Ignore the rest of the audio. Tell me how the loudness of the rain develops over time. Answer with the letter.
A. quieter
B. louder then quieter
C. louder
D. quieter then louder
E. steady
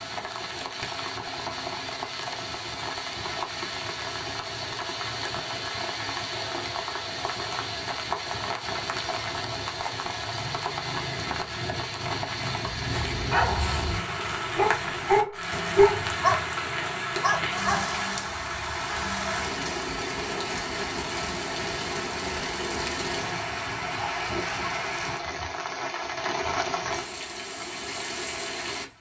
E.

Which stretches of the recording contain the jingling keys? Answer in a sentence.
The jingling keys can't be heard in this clip.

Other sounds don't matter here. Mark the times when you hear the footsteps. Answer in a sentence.
The footsteps can't be heard in this clip.